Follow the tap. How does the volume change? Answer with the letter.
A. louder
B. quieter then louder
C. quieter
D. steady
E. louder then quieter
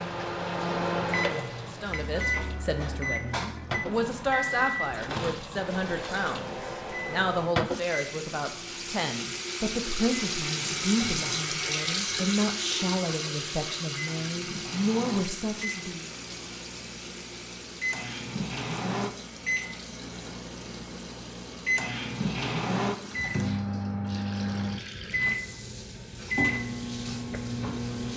E.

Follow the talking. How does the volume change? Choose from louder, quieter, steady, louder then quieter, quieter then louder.
steady.